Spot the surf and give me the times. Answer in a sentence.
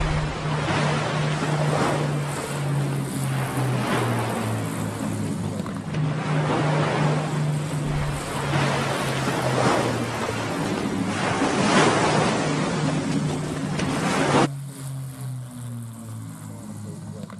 You can hear the surf from 0.0 to 14.5 s.